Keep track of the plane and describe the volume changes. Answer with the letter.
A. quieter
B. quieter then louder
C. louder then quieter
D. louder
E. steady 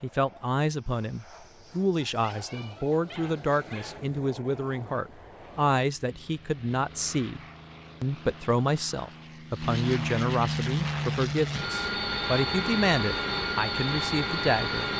D.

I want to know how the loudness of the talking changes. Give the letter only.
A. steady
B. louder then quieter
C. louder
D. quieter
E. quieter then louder
A.